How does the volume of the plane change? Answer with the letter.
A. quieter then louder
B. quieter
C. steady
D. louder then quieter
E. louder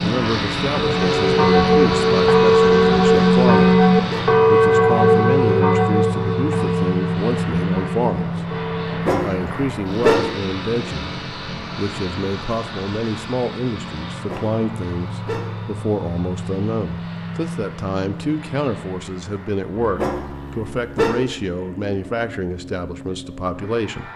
B.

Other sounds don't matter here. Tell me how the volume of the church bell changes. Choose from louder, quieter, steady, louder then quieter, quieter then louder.
quieter.